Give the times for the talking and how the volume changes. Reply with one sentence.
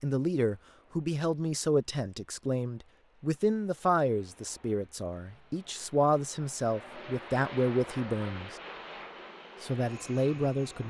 You can hear the talking from 0.0 to 8.6 s, at a steady volume; and briefly from 9.6 to 10.8 s.